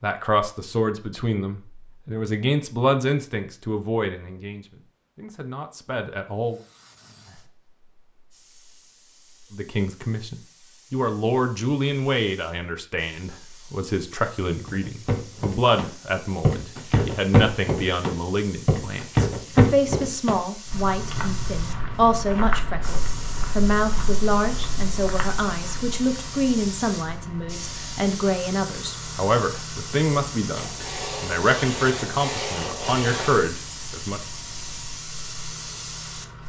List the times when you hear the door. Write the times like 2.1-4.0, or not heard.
not heard.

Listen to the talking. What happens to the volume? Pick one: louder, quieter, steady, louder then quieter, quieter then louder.
steady.